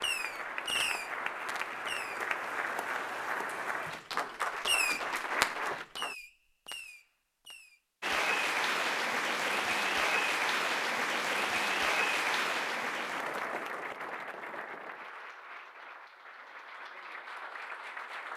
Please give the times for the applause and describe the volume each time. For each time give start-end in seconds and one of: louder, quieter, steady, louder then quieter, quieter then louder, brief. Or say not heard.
0.0-6.2 steady
8.0-18.3 quieter.